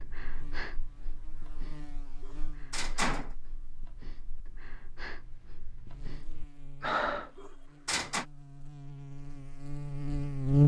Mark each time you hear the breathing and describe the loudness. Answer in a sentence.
You can hear the breathing from 0.0 to 7.3 s, getting quieter then louder.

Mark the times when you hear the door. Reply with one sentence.
The door can be heard from 2.2 to 3.4 s and from 7.3 to 8.2 s.